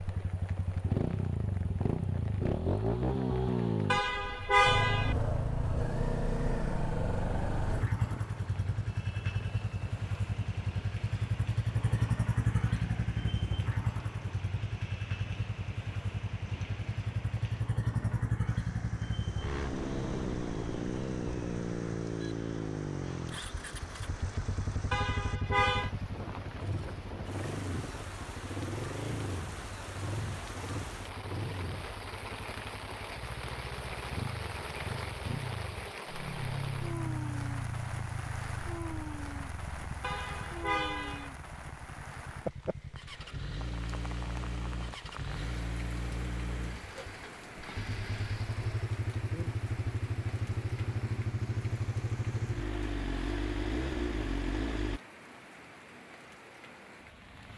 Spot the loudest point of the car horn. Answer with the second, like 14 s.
5 s.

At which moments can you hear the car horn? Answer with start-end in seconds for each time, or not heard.
3.9-5.2, 24.9-25.9, 40.0-41.3.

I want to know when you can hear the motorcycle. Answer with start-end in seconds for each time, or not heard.
0.0-55.0.